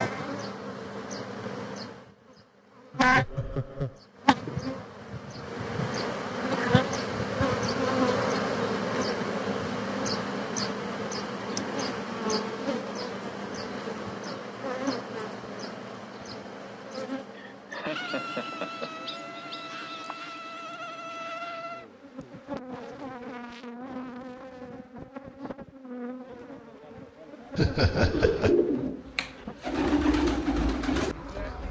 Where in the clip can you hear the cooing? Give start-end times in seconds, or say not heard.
27.9-31.6.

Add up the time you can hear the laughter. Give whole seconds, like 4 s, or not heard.
4 s.